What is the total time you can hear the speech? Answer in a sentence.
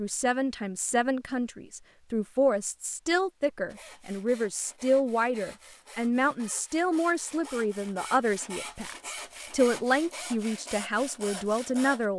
You can hear the speech for 12 seconds altogether.